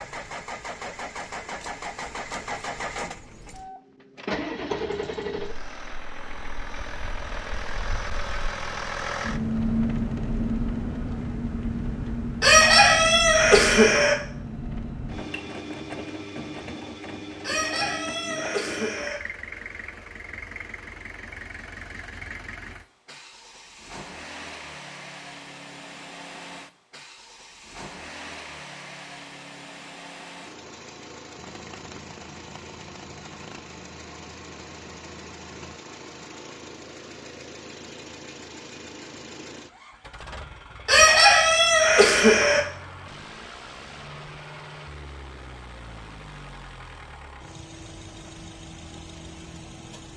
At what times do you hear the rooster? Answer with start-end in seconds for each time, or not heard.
12.4-14.2, 17.4-19.2, 40.9-42.6.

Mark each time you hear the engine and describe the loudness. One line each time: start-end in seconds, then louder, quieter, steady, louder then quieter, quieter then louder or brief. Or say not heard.
0.0-50.1 quieter.